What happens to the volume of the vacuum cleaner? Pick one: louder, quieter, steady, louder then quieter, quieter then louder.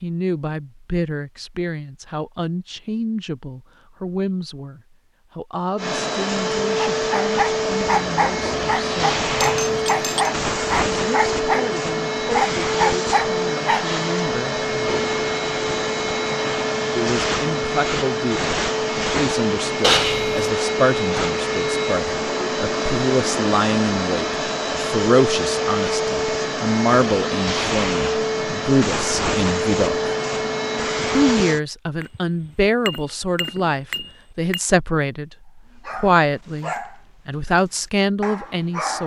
steady.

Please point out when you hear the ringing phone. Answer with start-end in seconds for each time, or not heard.
19.8-20.4.